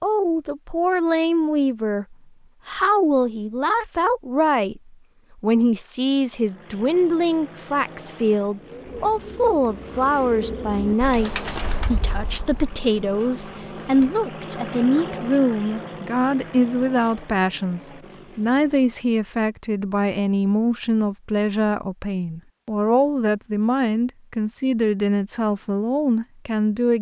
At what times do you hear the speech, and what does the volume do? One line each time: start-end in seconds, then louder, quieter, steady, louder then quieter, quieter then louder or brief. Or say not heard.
0.0-26.9 steady.